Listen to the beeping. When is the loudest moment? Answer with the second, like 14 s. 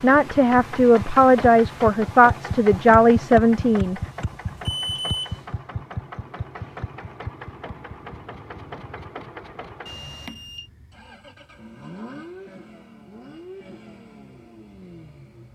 5 s.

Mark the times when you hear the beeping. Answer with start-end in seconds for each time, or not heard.
4.5-5.4, 9.8-10.7.